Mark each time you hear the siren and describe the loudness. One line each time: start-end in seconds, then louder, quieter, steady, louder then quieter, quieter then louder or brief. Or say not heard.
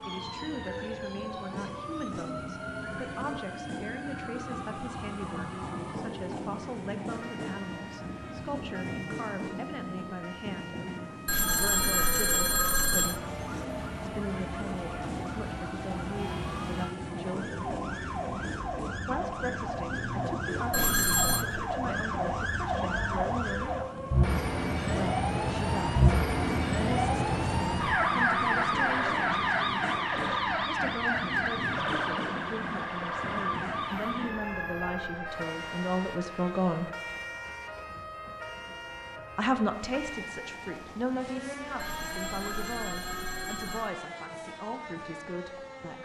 0.0-46.0 louder then quieter.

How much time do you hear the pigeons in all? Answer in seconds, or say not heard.
not heard.